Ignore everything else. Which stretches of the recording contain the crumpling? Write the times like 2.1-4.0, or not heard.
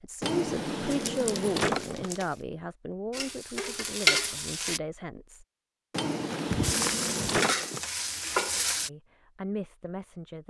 0.9-2.2, 6.3-7.2.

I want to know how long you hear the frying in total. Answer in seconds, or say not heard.
4 s.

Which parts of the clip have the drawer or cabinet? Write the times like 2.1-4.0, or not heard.
0.2-2.1, 5.9-7.8.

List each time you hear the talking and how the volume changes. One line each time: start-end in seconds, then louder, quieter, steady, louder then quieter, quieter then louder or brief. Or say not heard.
0.0-5.5 quieter
8.8-10.4 brief.